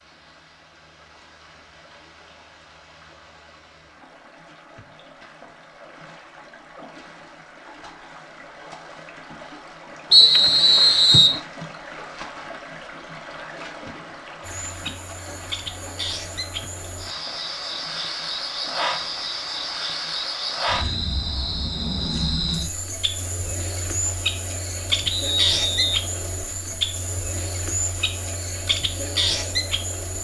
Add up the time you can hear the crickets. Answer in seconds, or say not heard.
16 s.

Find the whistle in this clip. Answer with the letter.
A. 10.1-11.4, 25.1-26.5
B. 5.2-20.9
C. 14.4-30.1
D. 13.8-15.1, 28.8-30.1
A.